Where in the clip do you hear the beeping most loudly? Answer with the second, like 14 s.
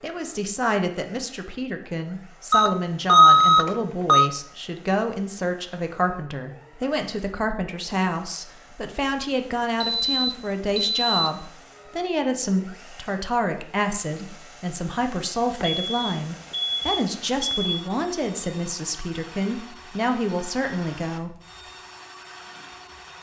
3 s.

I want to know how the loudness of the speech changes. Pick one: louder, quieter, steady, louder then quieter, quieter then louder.
steady.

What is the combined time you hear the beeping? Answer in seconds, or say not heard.
5 s.